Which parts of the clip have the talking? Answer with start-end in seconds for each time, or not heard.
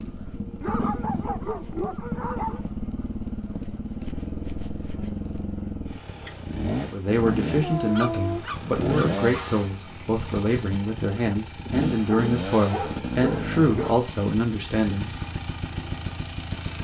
6.9-15.1.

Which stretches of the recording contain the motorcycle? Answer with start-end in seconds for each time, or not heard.
0.0-16.7.